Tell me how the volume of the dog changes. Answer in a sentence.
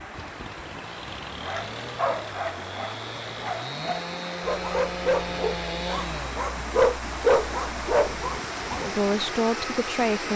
The loudness of the dog goes up.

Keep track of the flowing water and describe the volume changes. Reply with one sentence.
The loudness of the flowing water goes up.